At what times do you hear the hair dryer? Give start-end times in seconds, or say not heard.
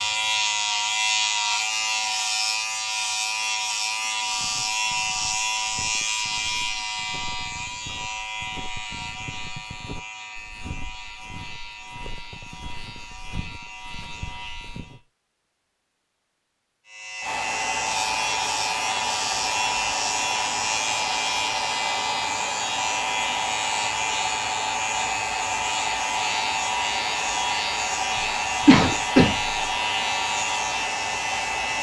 17.2-31.7.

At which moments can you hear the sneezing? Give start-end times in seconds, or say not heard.
28.2-29.6.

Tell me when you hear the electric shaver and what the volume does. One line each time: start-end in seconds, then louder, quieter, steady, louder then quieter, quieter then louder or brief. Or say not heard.
0.0-15.0 quieter
16.9-31.7 steady.